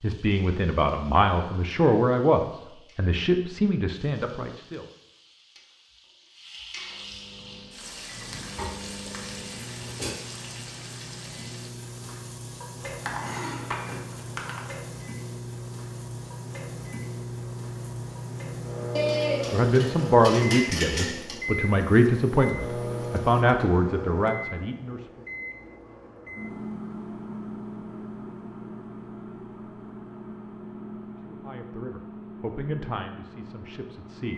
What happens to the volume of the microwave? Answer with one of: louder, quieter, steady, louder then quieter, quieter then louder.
louder then quieter.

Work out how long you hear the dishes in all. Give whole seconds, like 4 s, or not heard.
4 s.